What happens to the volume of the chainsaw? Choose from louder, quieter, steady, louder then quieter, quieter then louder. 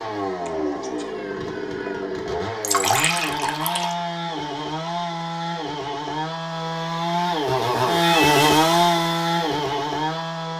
louder.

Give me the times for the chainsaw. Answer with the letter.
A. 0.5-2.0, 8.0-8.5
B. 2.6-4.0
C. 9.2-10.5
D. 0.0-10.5
D.